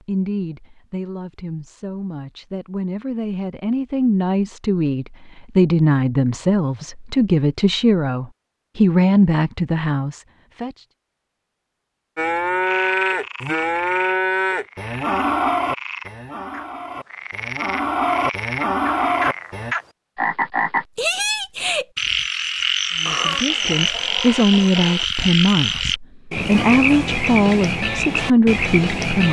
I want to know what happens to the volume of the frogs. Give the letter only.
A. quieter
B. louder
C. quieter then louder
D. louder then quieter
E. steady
B.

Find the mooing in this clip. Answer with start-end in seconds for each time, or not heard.
12.2-19.8.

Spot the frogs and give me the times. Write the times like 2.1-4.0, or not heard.
12.6-29.2.